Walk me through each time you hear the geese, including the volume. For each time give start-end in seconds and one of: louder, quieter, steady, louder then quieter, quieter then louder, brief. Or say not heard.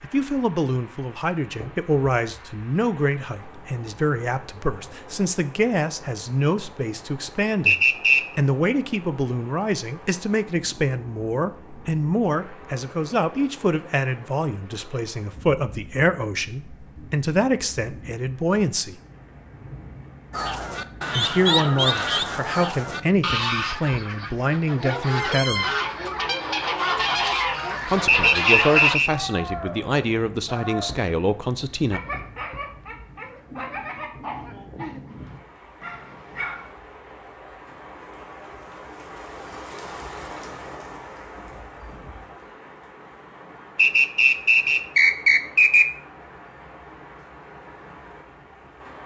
20.3-29.0 quieter then louder.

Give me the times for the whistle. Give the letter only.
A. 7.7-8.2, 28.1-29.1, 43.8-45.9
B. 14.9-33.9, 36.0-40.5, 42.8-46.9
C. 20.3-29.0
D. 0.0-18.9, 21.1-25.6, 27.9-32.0
A.